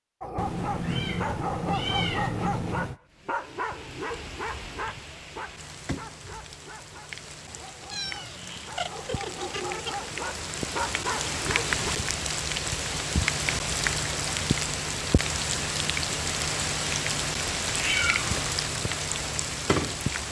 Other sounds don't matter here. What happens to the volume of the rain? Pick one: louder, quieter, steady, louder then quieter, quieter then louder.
louder.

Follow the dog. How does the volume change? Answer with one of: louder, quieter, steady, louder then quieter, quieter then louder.
quieter then louder.